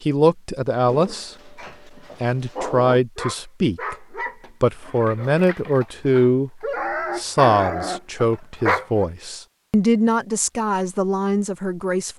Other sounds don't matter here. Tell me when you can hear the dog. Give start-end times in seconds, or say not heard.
0.8-9.1.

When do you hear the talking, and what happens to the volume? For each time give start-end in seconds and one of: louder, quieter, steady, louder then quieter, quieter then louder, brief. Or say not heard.
0.0-1.6 brief
2.2-12.1 steady.